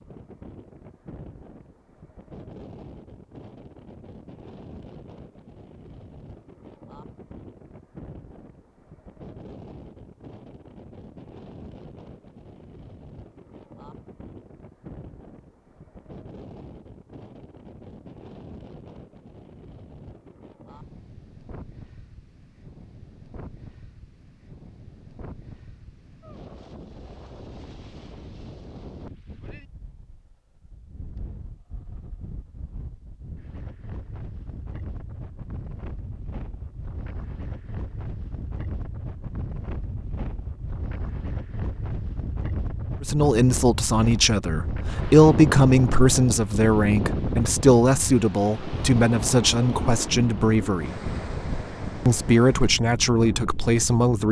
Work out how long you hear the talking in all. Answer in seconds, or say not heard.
10 s.